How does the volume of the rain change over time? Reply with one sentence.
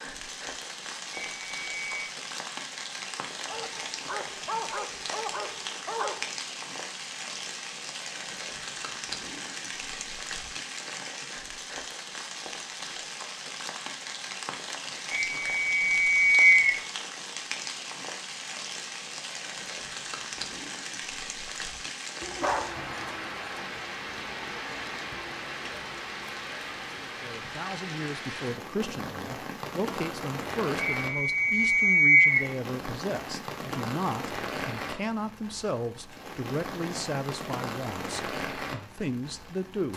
The loudness of the rain stays about the same.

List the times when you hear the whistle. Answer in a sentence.
You can hear the whistle from 1.3 to 2.1 s, from 15.1 to 16.8 s and from 30.9 to 32.5 s.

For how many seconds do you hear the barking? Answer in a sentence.
You can hear the barking for 4 seconds altogether.